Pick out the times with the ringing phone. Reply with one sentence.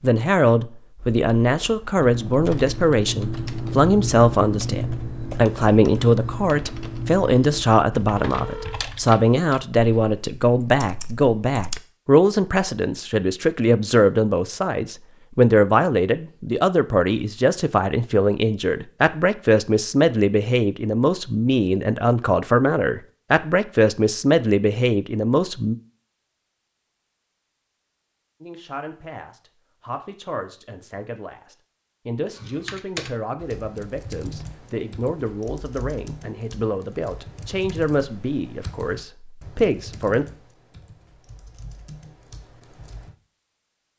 The ringing phone can be heard from 8.2 to 8.8 s.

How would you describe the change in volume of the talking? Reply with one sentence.
The loudness of the talking goes down.